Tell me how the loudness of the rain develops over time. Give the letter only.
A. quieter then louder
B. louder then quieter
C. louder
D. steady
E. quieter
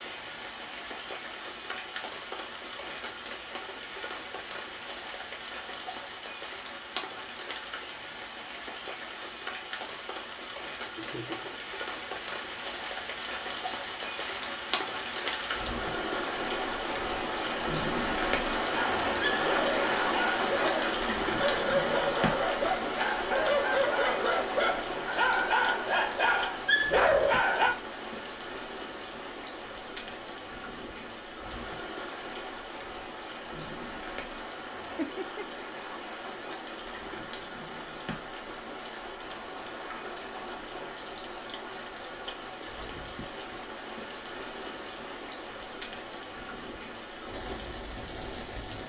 B.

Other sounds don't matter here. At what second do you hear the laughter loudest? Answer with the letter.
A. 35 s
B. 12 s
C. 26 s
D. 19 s
A.